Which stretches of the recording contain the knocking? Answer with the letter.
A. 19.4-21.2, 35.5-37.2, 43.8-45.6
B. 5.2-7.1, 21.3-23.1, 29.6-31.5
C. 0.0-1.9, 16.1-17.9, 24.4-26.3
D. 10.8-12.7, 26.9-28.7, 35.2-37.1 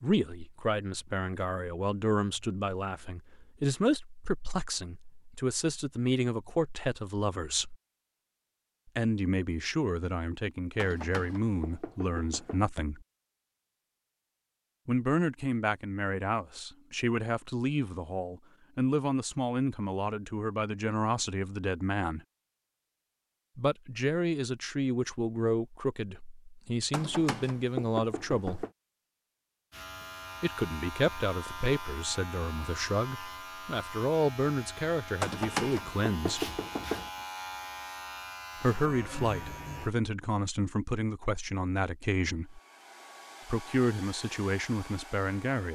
D.